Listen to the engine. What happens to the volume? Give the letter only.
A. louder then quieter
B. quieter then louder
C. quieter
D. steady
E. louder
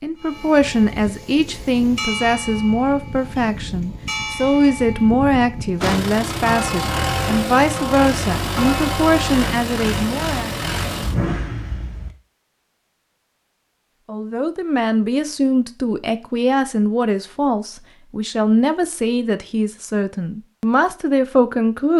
D.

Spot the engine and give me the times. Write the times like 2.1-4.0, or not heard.
5.8-12.1.